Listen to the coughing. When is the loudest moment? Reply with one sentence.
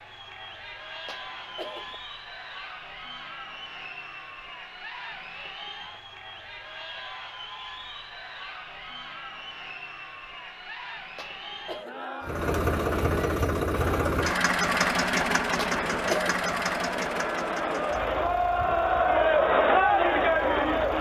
The volume of the coughing peaks at 16 seconds.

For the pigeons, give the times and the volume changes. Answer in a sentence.
You can't hear the pigeons here.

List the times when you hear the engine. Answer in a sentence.
The engine can be heard from 12.2 to 20.9 s.